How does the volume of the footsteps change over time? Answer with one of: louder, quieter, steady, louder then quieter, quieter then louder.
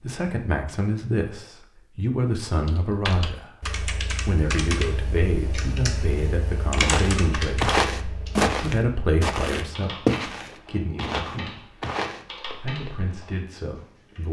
quieter.